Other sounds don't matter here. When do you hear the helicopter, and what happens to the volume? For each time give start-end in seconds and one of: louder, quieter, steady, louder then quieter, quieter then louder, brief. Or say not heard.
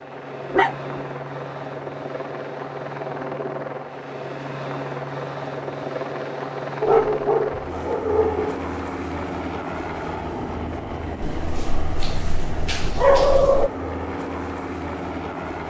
0.0-15.6 steady.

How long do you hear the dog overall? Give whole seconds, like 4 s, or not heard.
5 s.